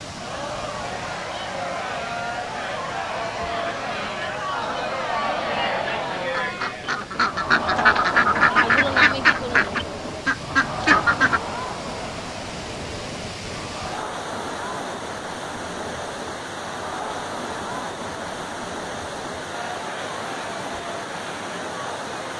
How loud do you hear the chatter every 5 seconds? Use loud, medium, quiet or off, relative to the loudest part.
loud, loud, medium, medium, medium.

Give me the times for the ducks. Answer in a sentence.
The ducks can be heard from 3.5 to 11.4 s.